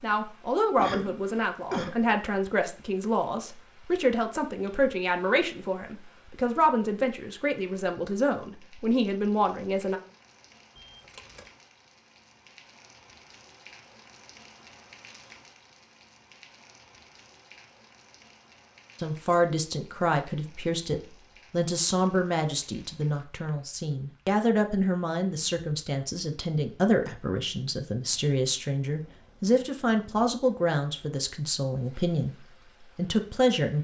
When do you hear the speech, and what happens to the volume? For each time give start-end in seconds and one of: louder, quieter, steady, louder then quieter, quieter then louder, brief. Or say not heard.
0.0-10.0 steady
19.0-33.7 steady.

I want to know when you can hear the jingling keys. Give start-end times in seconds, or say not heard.
10.8-11.5.